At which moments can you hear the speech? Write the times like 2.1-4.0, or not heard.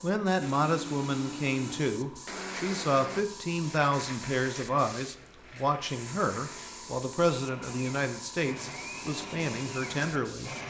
0.0-10.5.